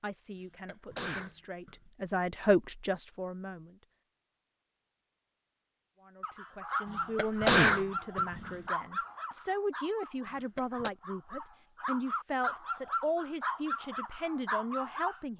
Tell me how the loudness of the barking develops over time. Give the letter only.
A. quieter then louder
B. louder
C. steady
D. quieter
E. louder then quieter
A.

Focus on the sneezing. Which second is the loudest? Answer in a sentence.
The volume of the sneezing peaks at 8 seconds.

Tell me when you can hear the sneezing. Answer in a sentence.
The sneezing can be heard from 0.4 to 1.8 s, from 6.9 to 8.6 s and from 10.2 to 10.9 s.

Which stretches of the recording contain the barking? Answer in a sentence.
You can hear the barking from 6.2 to 15.2 s.